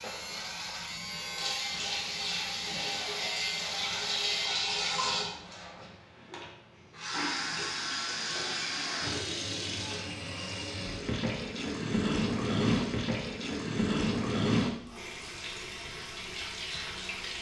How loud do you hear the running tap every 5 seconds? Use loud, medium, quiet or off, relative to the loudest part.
loud, loud, loud, medium.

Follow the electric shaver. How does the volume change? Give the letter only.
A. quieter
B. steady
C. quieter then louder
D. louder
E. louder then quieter
B.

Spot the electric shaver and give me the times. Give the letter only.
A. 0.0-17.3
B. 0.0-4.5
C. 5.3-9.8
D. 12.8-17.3
B.